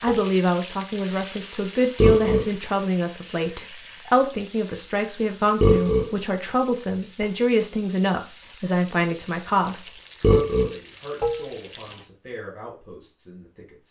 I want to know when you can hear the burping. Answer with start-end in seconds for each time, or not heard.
2.0-2.5, 5.6-6.1, 10.2-10.7.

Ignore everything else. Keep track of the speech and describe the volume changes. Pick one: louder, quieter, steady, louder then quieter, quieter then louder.
quieter.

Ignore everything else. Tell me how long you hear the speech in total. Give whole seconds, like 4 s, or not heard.
14 s.